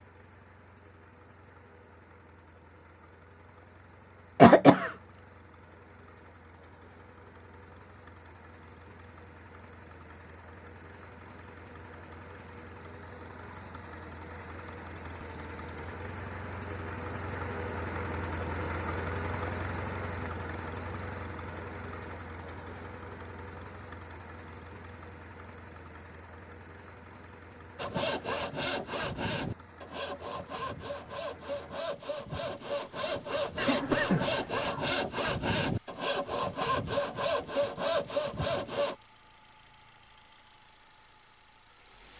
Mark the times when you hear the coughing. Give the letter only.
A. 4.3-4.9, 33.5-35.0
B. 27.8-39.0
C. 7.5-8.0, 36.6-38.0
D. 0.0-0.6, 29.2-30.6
A.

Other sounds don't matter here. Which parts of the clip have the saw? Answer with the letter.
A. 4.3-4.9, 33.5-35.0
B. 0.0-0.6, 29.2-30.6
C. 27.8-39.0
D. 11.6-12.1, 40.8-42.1
C.